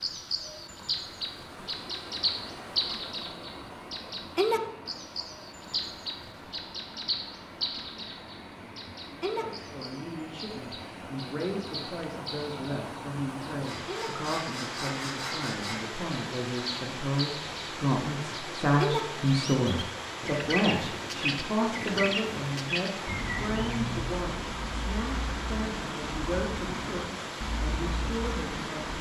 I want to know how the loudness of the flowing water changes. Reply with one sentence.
The volume of the flowing water goes up.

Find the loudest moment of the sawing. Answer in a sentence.
The volume of the sawing peaks at 15 seconds.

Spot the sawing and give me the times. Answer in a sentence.
You can hear the sawing from 13.7 to 15.9 s.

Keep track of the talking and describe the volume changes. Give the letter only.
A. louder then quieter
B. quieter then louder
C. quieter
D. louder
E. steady
A.